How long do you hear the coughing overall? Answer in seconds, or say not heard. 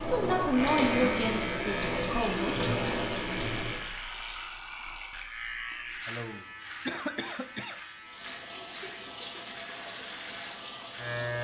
2 s.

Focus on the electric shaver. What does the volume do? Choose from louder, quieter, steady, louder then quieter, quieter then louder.
quieter.